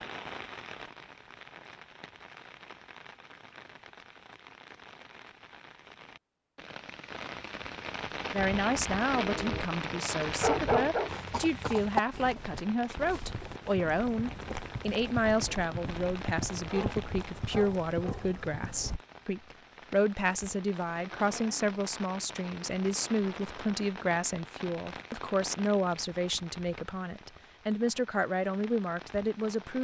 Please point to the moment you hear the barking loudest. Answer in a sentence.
The volume of the barking peaks at 11 seconds.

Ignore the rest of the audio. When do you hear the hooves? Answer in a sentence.
The hooves can be heard from 11.1 to 19.0 s.